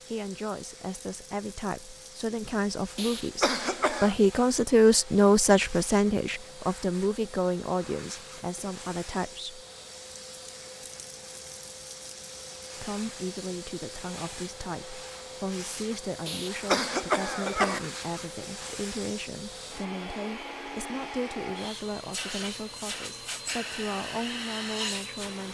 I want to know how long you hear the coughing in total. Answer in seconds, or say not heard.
3 s.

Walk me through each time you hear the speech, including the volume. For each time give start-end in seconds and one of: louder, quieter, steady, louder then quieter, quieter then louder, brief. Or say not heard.
0.1-9.7 louder then quieter
12.8-25.4 steady.